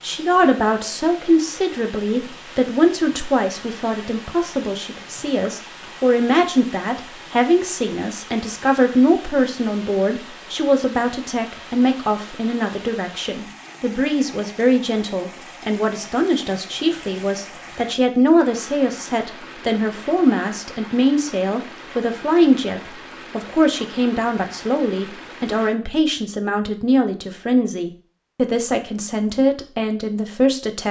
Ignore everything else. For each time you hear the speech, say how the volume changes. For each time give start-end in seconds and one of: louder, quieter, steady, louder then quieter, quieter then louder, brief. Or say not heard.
0.0-30.8 steady.